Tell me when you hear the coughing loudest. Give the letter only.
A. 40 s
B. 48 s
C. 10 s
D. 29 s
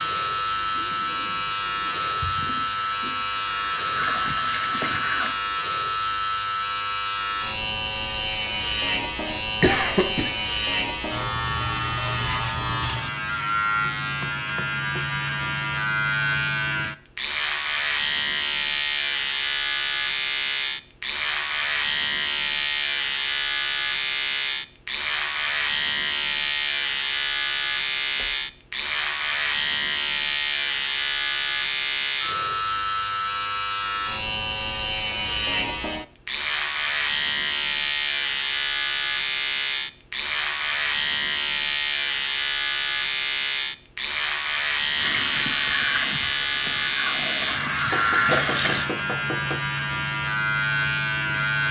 C.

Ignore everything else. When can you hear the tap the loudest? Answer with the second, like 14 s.
48 s.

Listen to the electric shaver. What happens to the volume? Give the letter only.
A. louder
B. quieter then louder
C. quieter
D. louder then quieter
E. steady
E.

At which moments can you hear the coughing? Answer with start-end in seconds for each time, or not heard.
9.6-10.3, 48.3-48.8.